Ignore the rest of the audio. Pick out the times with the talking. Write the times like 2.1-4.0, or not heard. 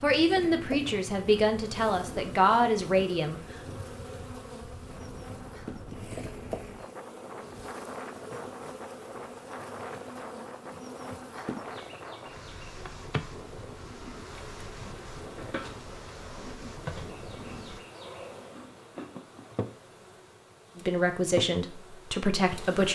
0.0-3.4, 20.8-22.9.